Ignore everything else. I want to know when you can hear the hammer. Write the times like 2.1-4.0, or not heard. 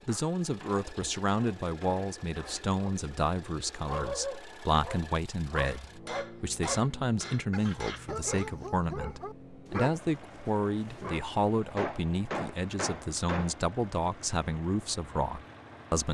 0.1-2.6, 5.7-8.5, 11.8-13.6.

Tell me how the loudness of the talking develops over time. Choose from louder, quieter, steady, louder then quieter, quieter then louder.
steady.